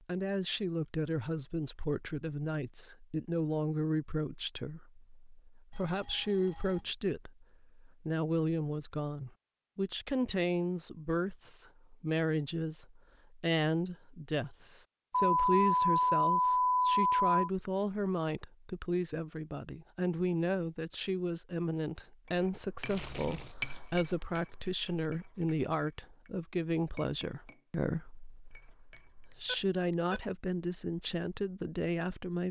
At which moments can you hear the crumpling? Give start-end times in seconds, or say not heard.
22.9-23.6.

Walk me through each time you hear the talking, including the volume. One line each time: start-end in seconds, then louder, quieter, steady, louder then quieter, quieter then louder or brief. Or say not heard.
0.1-32.4 steady.